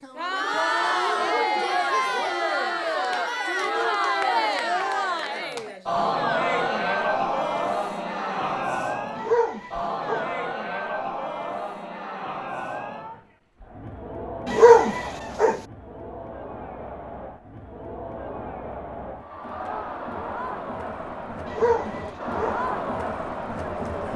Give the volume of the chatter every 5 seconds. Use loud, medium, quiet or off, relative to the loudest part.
loud, loud, medium, quiet, medium.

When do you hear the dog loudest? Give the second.
15 s.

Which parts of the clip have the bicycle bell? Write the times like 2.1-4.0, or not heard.
not heard.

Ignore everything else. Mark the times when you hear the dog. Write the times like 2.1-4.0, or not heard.
1.1-2.3, 9.2-10.3, 14.4-15.6, 21.4-22.6.